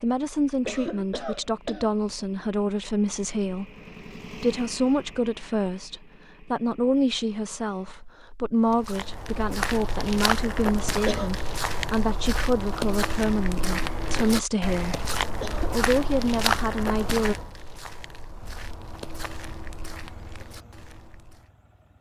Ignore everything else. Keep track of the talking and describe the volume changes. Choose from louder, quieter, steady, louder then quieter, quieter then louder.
steady.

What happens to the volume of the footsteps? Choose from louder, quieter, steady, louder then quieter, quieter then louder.
quieter.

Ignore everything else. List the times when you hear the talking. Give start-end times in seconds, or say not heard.
0.0-17.4.